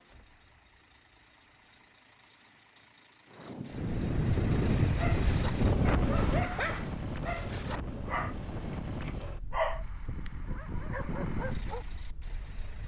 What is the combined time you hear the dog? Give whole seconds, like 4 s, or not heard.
7 s.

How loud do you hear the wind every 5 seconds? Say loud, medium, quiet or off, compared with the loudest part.
loud, loud, quiet.